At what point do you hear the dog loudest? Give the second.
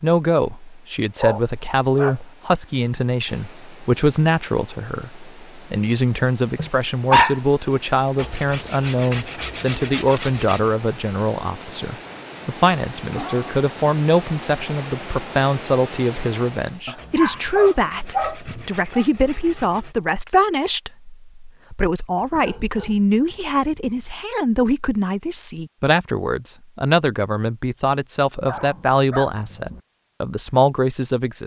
7 s.